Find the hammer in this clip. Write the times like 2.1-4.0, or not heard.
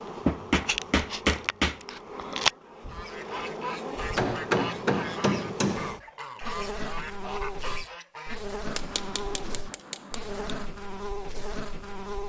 0.2-1.8, 4.2-6.0, 8.7-10.7.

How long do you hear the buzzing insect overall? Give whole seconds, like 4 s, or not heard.
12 s.